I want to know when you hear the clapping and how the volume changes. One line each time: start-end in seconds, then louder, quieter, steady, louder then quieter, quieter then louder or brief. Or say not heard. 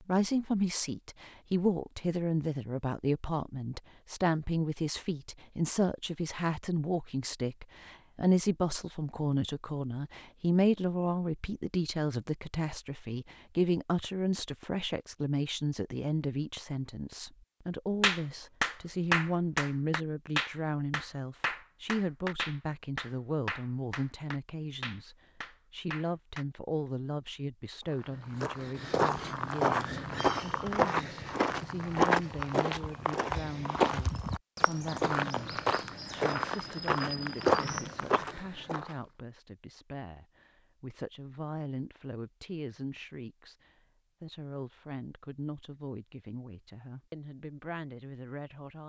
18.0-26.4 quieter.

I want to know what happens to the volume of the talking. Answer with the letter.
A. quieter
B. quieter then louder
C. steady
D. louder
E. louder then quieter
A.